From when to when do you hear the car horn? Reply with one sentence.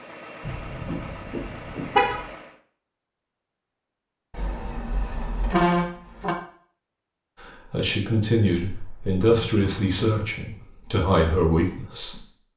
The car horn can be heard from 0.5 to 2.2 s, from 4.3 to 6.3 s and from 8.7 to 10.3 s.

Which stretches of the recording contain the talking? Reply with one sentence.
You can hear the talking from 7.4 to 12.2 s.